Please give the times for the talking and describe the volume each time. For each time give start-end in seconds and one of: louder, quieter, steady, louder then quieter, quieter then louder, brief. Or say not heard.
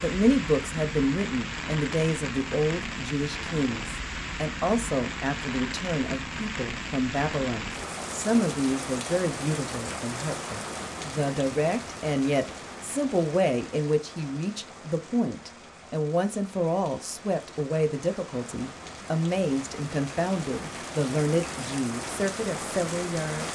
0.0-23.5 steady.